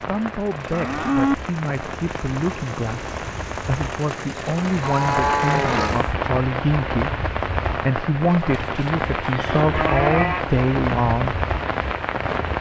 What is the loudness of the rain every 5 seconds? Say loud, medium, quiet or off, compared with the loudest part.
medium, loud, loud.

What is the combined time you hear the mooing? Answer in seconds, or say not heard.
4 s.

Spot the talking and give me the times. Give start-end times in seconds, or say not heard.
0.0-11.4.